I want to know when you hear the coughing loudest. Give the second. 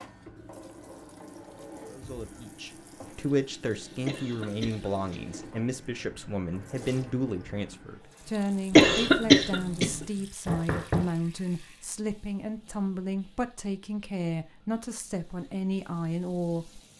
9 s.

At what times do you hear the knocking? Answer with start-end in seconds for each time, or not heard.
10.4-11.1.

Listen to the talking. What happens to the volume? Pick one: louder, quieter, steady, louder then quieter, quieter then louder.
steady.